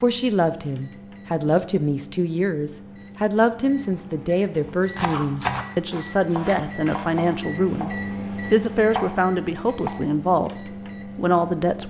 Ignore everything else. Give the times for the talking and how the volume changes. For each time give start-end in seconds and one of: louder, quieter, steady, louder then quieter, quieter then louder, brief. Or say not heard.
0.0-10.5 steady
11.2-11.8 brief.